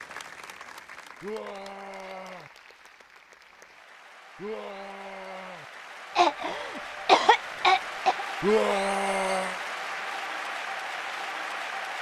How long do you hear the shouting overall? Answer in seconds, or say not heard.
4 s.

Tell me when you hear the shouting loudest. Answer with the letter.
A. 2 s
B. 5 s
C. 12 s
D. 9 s
D.